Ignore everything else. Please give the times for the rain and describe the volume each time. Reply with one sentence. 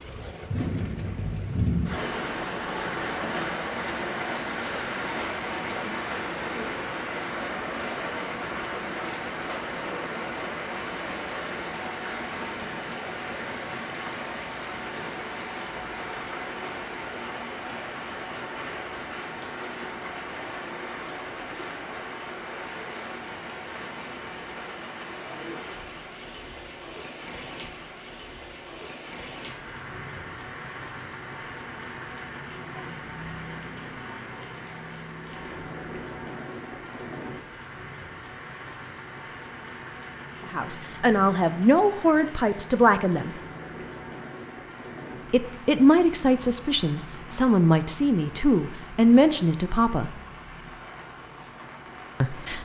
You can hear the rain from 0.0 to 52.6 s, getting quieter.